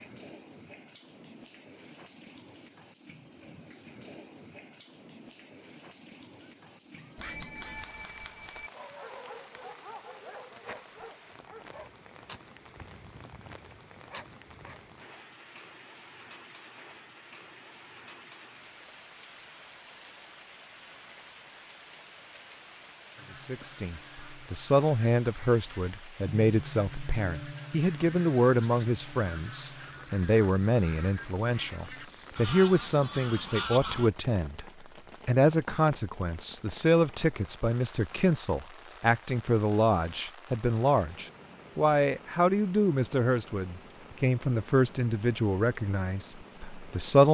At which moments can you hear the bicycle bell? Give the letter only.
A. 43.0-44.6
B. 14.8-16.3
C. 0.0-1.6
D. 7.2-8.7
D.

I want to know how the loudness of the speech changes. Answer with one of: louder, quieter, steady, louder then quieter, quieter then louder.
steady.